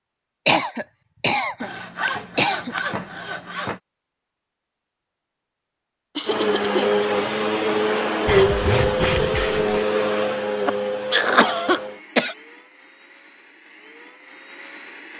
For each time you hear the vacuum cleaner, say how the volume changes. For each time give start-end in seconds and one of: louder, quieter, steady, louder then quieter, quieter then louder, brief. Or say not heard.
6.2-15.1 quieter.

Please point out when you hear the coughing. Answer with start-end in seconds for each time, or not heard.
0.5-2.8, 6.2-7.0, 10.7-12.3.